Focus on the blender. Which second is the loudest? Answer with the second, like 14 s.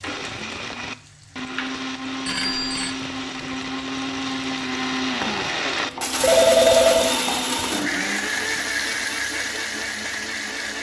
7 s.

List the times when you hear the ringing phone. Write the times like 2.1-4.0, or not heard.
2.2-2.9, 6.2-7.2.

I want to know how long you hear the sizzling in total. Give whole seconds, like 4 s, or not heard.
11 s.